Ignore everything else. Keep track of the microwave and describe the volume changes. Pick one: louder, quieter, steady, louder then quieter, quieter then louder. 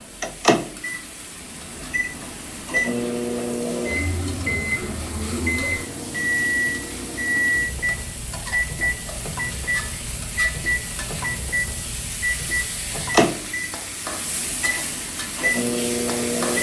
steady.